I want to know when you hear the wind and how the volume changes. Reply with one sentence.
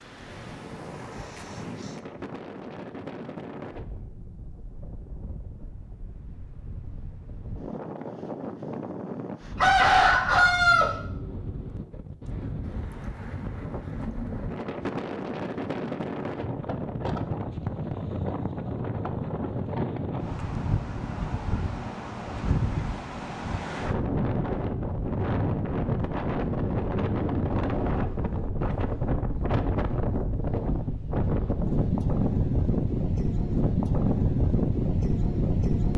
The wind can be heard from 0.0 to 35.9 s, getting louder.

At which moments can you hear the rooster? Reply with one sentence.
The rooster can be heard from 9.6 to 10.9 s.